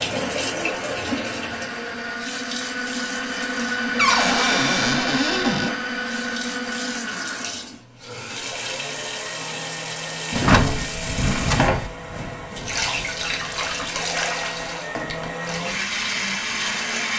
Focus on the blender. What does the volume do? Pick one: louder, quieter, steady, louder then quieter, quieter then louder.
quieter then louder.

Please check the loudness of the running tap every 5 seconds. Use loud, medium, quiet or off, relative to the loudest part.
loud, medium, loud, medium.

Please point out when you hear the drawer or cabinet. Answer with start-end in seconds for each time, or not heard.
4.0-5.8, 10.3-11.9.